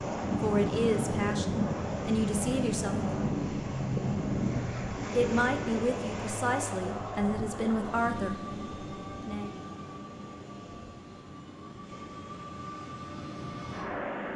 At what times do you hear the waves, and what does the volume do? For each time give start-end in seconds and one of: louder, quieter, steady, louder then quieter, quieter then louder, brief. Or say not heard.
0.0-14.3 quieter.